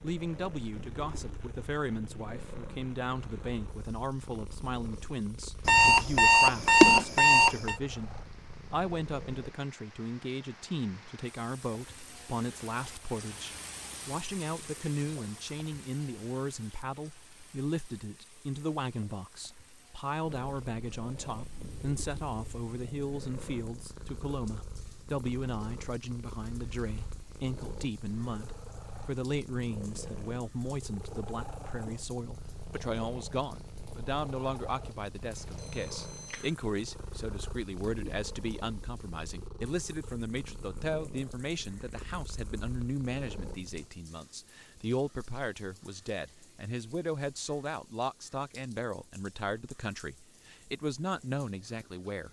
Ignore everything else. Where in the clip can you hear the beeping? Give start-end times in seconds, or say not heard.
5.7-7.8, 35.4-36.5.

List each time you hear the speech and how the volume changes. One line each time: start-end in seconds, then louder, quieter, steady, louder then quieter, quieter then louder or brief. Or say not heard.
0.0-52.2 steady.